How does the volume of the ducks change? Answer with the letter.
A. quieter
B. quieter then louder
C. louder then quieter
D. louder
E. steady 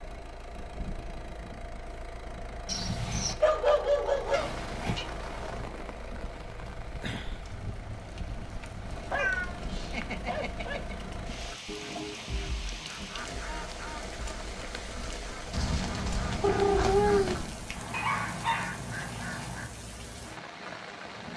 B.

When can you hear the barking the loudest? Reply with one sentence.
The loudest moment of the barking is at 4 seconds.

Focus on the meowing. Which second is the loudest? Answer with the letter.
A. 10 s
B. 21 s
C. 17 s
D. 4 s
C.